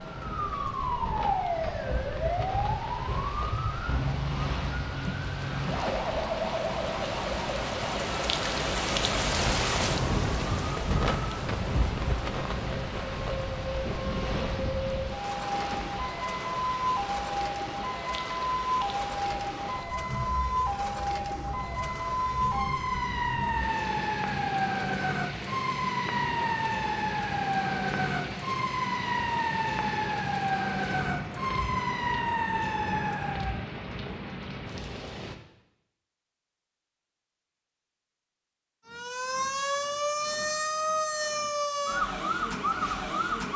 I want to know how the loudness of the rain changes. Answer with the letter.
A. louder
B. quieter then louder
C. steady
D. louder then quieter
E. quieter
D.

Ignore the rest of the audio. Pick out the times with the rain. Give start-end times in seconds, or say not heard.
0.0-35.4.